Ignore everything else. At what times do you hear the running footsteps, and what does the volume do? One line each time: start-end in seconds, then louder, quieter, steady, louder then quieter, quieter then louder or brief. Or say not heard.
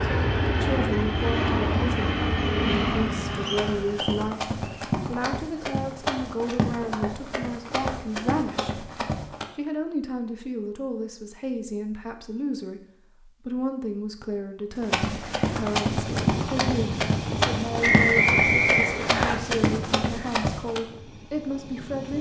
3.5-9.4 steady
14.8-20.8 steady.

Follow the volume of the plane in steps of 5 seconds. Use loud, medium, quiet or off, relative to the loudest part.
loud, off, off, medium, quiet.